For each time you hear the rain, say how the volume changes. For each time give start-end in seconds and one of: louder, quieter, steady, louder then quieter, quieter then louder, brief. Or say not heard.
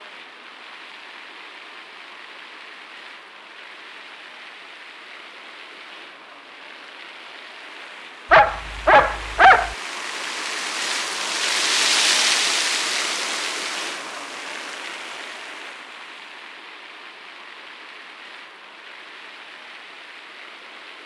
0.0-21.0 louder then quieter.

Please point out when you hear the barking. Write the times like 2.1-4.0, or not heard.
8.3-9.8.